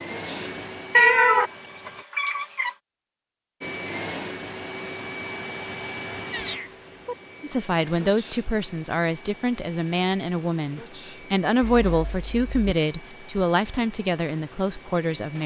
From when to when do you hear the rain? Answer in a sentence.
You can't hear the rain here.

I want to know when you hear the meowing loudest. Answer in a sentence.
The volume of the meowing peaks at 1 second.